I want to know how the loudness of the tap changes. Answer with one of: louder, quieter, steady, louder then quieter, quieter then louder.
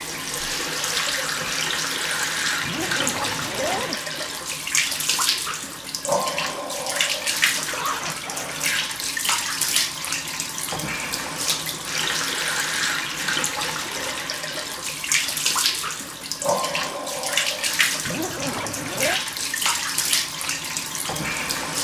steady.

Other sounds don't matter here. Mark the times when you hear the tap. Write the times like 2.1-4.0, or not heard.
0.0-21.7.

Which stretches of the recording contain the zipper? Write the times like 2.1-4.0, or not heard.
2.6-4.0, 7.5-8.6, 18.0-19.2.